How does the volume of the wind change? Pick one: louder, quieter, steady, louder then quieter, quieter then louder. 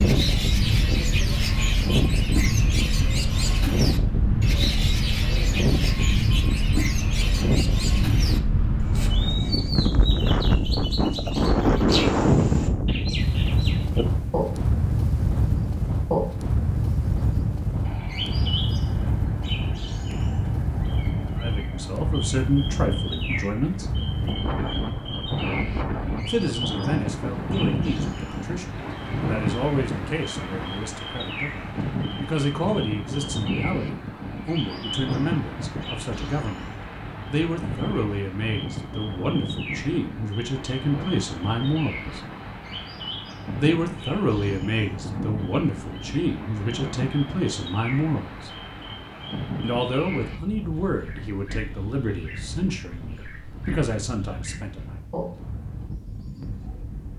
quieter.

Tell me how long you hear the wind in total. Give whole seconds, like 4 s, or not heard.
57 s.